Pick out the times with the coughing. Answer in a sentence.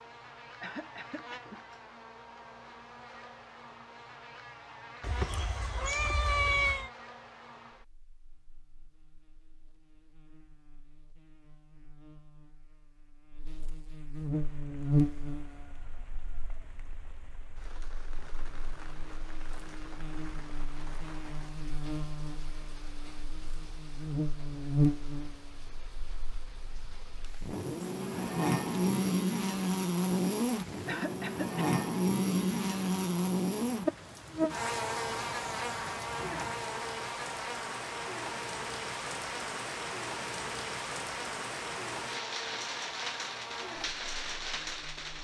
You can hear the coughing from 0.6 to 1.6 s and from 30.9 to 31.6 s.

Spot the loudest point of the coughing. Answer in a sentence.
The volume of the coughing peaks at 31 seconds.